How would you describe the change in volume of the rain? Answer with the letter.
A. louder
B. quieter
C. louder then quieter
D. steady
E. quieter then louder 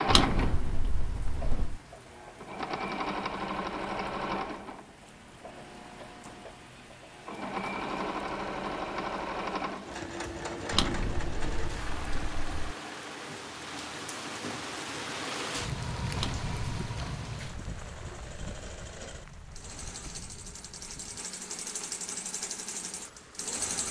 C.